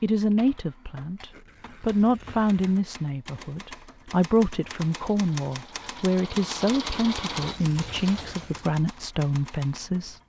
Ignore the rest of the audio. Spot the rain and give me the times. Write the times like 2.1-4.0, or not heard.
not heard.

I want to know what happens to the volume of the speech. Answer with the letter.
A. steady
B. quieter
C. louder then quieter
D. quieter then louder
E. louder
A.